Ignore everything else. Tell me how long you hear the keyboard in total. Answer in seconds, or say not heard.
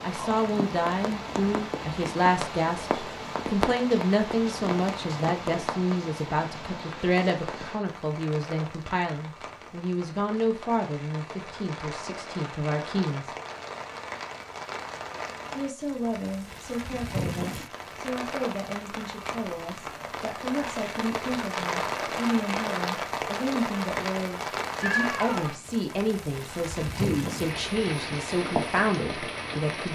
not heard.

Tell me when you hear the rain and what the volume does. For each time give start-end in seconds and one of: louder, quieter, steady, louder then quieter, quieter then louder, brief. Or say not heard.
0.0-29.8 quieter then louder.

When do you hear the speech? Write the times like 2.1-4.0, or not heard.
0.0-13.3, 15.6-29.8.